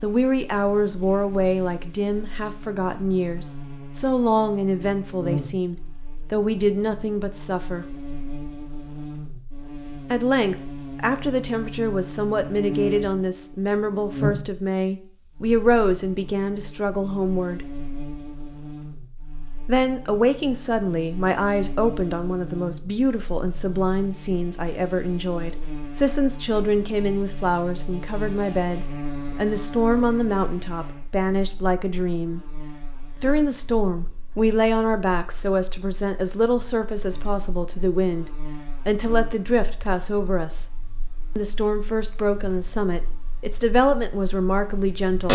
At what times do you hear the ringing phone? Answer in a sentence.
You can't hear the ringing phone here.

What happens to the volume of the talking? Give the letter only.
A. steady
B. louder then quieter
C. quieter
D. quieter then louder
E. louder
A.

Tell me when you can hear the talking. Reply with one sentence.
You can hear the talking from 0.0 to 8.0 s, from 10.1 to 17.6 s, from 19.6 to 32.5 s, from 33.2 to 40.6 s and from 41.4 to 45.2 s.